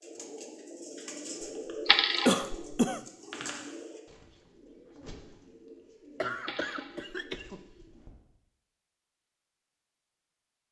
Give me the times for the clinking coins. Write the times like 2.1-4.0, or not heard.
1.9-2.8, 6.4-7.1.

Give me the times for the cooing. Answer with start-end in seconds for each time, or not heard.
0.0-8.2.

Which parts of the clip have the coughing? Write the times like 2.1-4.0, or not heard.
2.2-3.0, 6.2-7.6.